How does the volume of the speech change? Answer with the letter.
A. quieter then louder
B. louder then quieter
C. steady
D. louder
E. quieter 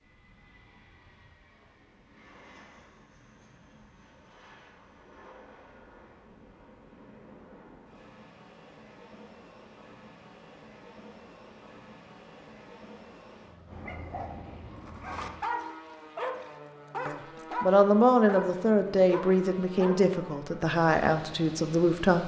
E.